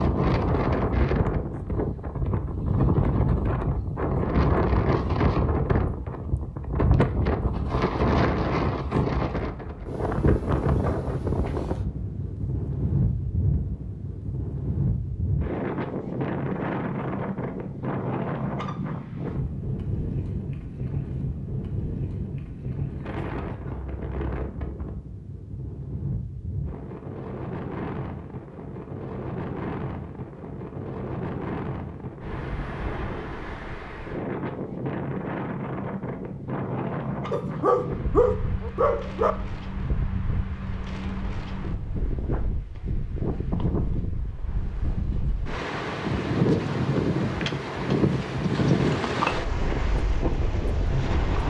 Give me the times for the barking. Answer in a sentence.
You can hear the barking from 37.3 to 39.4 s.